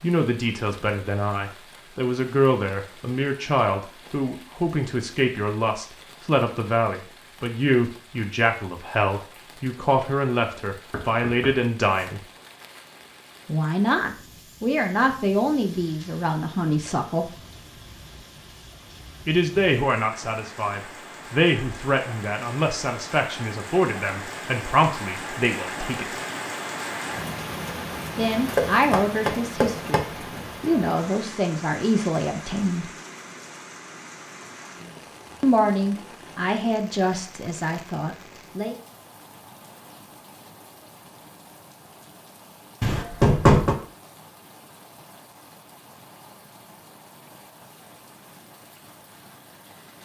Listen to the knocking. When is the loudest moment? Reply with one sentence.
The volume of the knocking peaks at 43 seconds.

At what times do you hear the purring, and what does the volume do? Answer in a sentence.
The purring can't be heard in this clip.